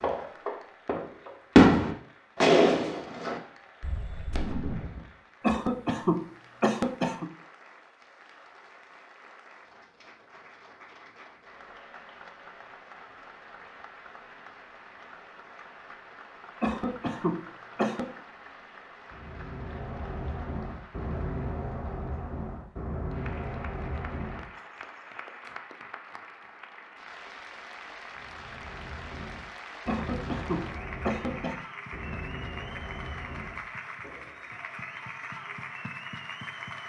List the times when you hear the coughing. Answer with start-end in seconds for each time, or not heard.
5.4-7.2, 16.6-18.1, 29.9-31.6.